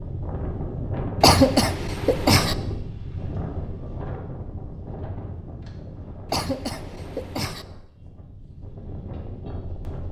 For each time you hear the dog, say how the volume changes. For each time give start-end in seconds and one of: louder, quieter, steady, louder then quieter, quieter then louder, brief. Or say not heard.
not heard.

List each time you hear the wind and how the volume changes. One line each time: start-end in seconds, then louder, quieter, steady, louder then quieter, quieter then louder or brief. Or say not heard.
0.0-10.0 quieter.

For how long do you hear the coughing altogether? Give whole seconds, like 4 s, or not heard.
3 s.